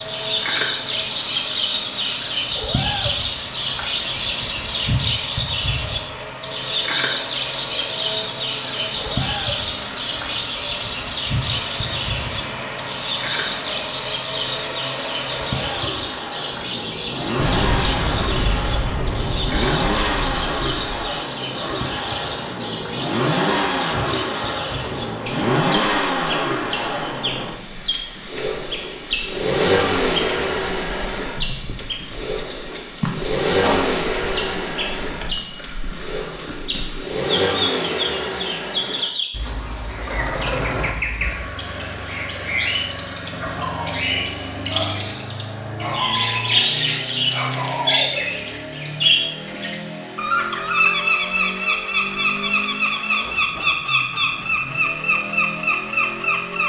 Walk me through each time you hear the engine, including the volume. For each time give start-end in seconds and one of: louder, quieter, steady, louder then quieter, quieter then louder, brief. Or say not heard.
0.0-56.6 louder then quieter.